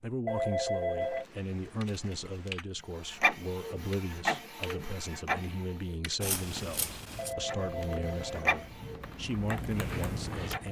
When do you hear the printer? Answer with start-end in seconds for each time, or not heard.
3.0-6.0, 7.5-10.6.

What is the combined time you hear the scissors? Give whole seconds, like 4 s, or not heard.
3 s.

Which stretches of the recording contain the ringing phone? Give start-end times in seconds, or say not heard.
0.2-1.2, 7.2-8.8.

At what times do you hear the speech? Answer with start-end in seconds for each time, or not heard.
0.0-10.6.